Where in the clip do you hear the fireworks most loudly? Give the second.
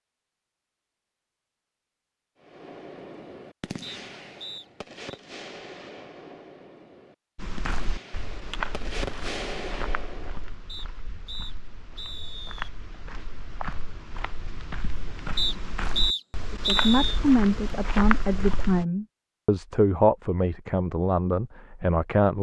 9 s.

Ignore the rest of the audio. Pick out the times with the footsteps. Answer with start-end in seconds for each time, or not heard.
7.3-18.9.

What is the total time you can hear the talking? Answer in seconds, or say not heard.
6 s.